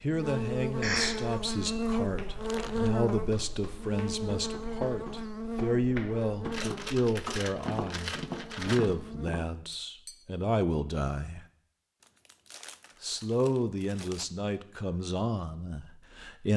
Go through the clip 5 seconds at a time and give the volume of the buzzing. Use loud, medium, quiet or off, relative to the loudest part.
loud, medium, off, off.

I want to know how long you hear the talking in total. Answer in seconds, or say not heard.
15 s.